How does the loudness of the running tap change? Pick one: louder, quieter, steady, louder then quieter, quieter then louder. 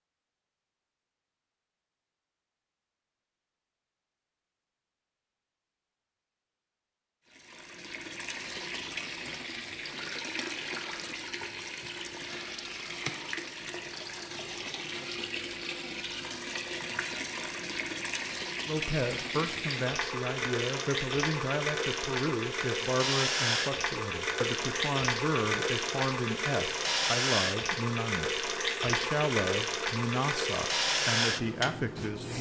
louder.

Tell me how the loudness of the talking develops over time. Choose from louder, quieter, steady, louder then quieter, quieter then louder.
steady.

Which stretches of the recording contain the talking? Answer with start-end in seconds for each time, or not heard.
18.6-32.3.